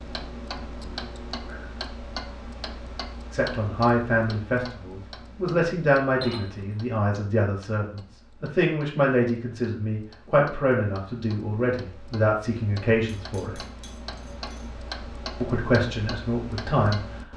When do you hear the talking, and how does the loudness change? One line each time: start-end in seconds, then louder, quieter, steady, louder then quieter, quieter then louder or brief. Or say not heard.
3.3-13.6 steady
15.4-17.0 brief.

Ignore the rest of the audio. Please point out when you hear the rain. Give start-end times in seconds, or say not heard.
not heard.